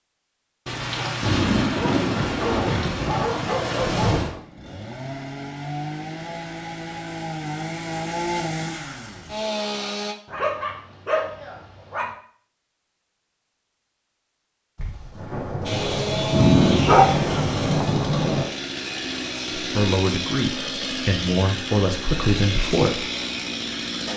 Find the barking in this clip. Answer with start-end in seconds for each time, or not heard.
1.8-4.4, 10.2-12.1, 16.3-17.1.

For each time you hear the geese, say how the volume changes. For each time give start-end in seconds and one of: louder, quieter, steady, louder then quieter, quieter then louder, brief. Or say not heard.
not heard.